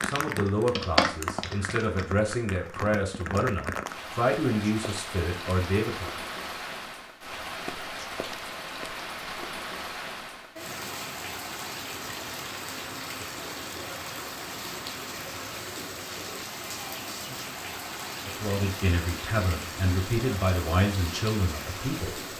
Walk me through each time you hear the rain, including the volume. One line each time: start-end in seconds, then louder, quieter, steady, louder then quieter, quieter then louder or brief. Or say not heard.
0.0-22.3 steady.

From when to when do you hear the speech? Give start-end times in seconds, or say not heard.
0.0-6.2, 18.2-22.3.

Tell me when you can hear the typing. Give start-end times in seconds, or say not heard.
0.0-2.0.